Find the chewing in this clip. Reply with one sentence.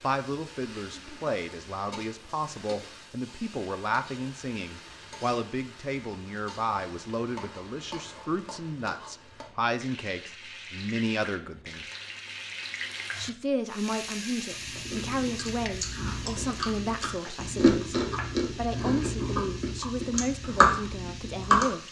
You can hear the chewing from 14.5 to 21.7 s.